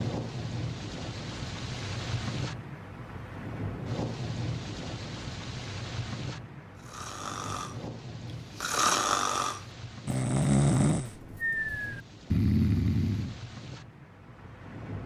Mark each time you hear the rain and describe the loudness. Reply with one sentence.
The rain can be heard from 0.0 to 15.0 s, getting quieter.